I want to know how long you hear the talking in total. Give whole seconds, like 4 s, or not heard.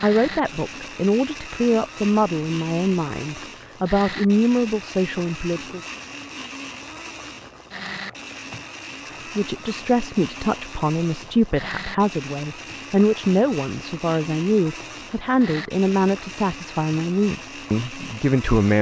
15 s.